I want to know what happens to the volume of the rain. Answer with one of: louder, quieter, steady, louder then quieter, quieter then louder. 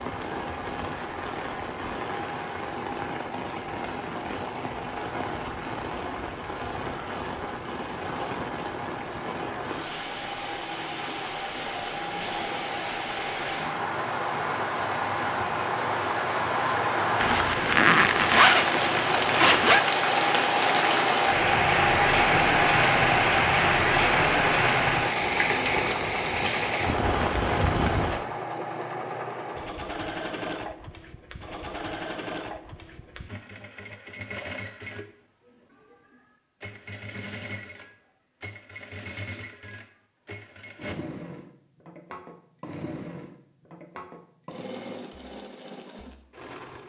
louder.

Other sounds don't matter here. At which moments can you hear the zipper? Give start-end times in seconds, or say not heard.
17.2-19.8.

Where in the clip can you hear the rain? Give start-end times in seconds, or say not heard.
0.0-28.2.